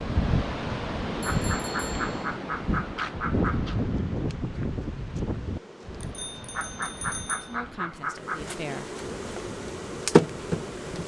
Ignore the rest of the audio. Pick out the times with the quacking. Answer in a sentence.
You can hear the quacking from 1.2 to 3.8 s and from 6.5 to 8.6 s.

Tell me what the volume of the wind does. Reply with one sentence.
The volume of the wind goes down.